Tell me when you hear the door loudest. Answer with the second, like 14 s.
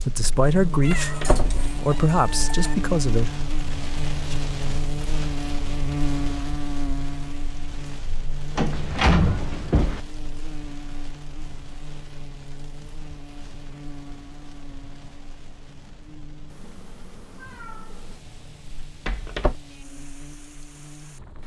9 s.